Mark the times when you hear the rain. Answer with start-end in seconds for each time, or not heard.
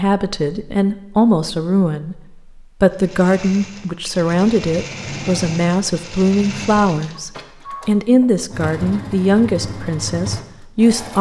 not heard.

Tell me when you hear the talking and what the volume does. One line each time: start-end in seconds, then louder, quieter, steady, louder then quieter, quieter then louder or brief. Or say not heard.
0.0-11.1 steady.